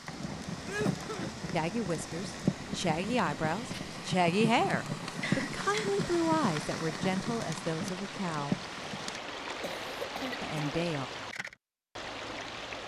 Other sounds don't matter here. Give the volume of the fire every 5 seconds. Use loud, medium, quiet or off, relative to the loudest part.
loud, loud, off.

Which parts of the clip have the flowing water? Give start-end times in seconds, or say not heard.
0.0-12.8.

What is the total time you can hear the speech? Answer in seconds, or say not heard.
8 s.